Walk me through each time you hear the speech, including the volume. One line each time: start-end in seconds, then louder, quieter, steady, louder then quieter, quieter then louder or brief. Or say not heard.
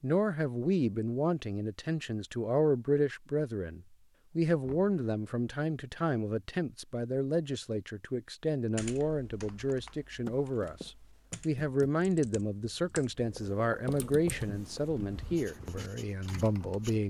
0.0-17.0 steady.